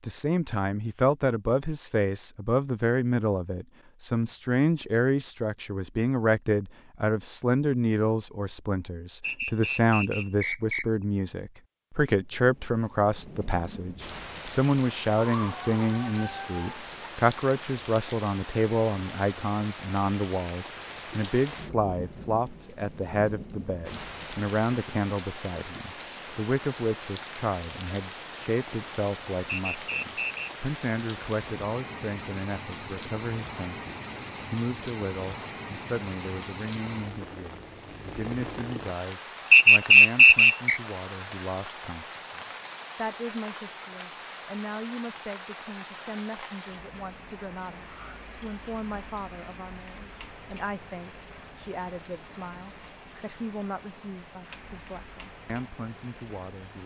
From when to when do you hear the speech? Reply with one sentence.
You can hear the speech from 0.1 to 56.8 s.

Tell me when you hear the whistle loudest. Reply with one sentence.
The loudest moment of the whistle is at 40 seconds.